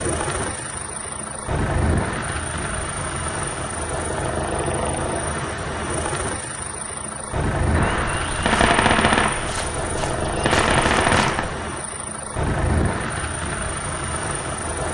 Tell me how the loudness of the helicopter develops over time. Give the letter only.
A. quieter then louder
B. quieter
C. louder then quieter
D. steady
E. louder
D.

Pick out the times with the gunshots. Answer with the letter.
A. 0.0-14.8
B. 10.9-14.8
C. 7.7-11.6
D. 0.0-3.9
C.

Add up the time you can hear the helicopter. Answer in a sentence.
You can hear the helicopter for 15 seconds altogether.